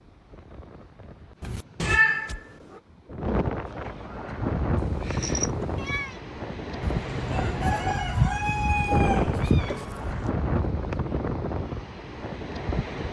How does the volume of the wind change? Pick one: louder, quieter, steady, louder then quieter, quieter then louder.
louder.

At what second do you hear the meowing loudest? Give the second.
2 s.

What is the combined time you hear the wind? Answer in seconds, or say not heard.
13 s.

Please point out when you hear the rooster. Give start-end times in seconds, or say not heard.
6.8-10.3.